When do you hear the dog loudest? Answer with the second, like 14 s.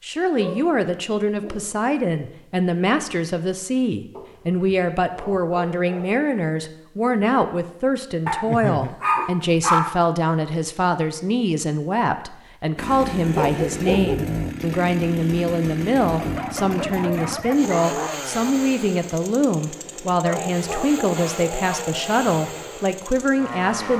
10 s.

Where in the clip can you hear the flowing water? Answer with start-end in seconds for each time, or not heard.
not heard.